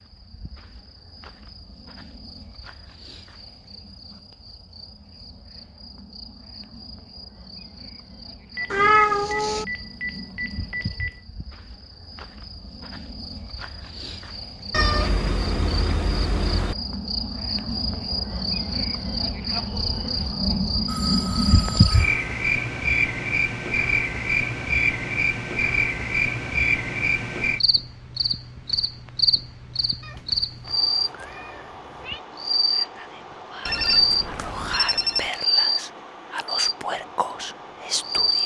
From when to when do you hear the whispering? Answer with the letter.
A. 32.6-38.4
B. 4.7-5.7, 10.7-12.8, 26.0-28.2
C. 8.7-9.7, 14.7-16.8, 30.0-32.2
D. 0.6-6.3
A.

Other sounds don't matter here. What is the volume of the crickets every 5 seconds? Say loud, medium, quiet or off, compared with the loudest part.
quiet, quiet, quiet, medium, loud, loud, loud, loud.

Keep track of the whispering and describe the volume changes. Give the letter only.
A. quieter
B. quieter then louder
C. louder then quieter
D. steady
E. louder
E.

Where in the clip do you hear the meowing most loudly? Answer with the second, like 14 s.
9 s.